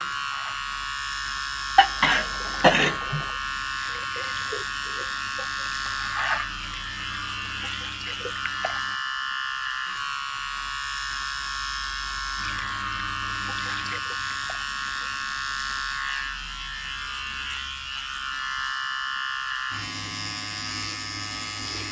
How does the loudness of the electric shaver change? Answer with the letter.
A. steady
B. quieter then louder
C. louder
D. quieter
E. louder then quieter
A.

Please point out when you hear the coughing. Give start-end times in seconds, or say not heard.
1.8-3.2.